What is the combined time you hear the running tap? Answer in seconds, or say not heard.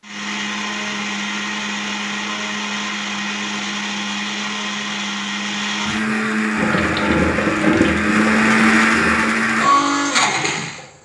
3 s.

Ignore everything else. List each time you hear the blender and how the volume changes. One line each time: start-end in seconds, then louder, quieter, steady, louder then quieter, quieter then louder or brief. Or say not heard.
0.0-10.9 louder.